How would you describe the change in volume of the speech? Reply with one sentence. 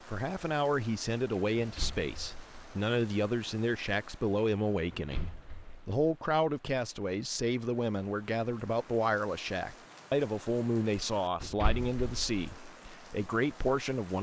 The volume of the speech stays about the same.